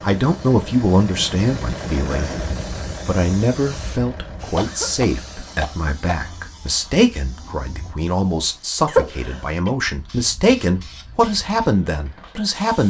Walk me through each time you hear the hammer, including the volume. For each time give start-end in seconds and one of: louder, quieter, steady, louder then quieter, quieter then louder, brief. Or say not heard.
not heard.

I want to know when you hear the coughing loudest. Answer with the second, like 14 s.
9 s.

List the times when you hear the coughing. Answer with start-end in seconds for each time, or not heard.
2.0-2.6, 4.5-6.3, 8.8-9.7.